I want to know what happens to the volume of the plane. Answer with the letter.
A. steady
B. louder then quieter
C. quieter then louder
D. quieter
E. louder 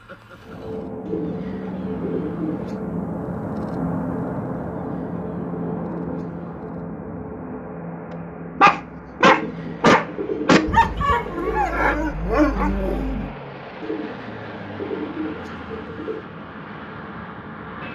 D.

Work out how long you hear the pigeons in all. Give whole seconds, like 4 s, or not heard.
9 s.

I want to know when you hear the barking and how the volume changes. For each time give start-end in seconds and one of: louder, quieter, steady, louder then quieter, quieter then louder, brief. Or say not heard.
8.6-13.3 quieter.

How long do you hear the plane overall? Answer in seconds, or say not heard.
18 s.